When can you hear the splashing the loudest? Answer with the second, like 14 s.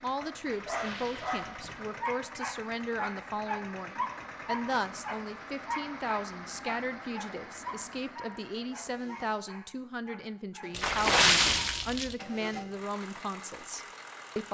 11 s.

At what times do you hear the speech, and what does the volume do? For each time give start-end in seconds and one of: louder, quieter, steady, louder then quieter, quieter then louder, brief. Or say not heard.
0.0-14.4 steady.